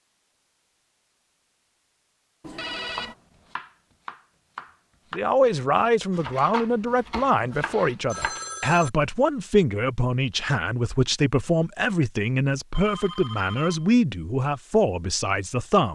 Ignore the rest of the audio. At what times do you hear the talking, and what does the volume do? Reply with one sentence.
The talking can be heard from 5.1 to 15.9 s, at a steady volume.